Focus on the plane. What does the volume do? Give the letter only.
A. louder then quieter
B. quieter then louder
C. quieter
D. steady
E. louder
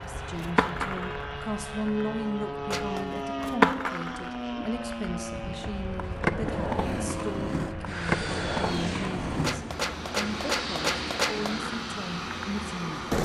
D.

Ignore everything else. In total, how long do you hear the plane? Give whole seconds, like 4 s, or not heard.
13 s.